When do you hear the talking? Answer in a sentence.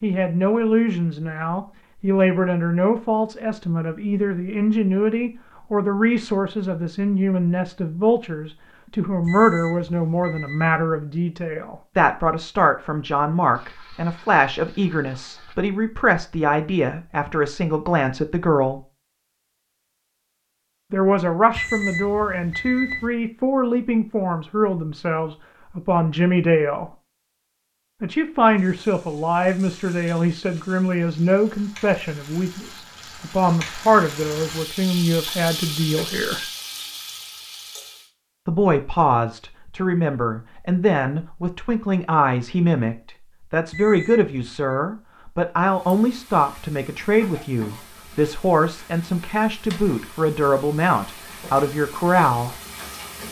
You can hear the talking from 0.0 to 18.8 s, from 20.9 to 26.9 s, from 28.0 to 36.4 s and from 38.5 to 52.5 s.